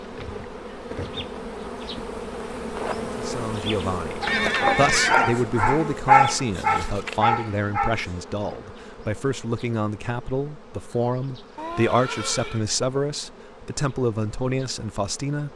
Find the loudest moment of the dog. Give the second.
6 s.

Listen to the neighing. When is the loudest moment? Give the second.
5 s.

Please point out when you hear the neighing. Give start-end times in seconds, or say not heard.
4.2-5.3, 11.6-12.7.